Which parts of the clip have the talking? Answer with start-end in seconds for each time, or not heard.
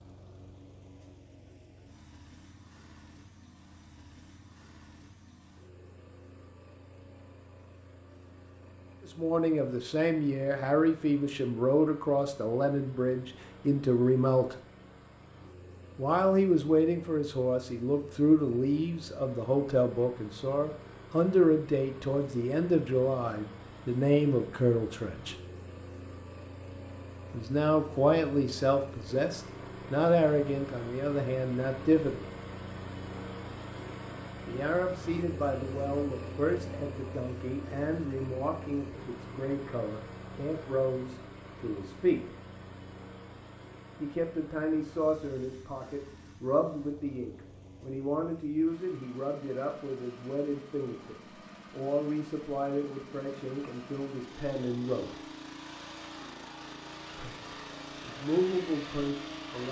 9.0-14.6, 15.9-25.4, 27.3-32.2, 34.5-42.3, 44.0-55.2, 57.1-59.6.